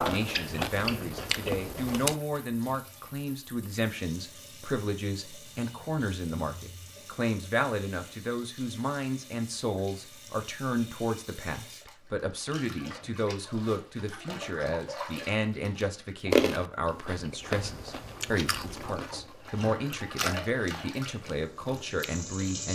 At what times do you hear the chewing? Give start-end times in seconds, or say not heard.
0.0-2.1, 16.3-22.6.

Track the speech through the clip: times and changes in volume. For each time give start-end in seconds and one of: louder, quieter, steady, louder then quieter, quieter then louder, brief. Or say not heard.
0.0-22.7 steady.